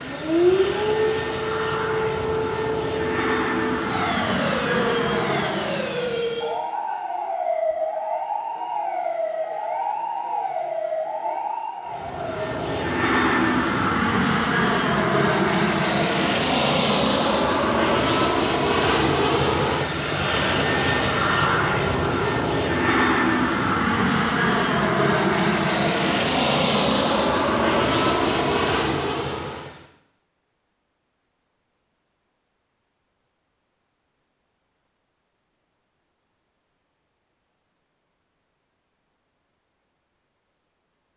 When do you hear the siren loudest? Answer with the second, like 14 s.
1 s.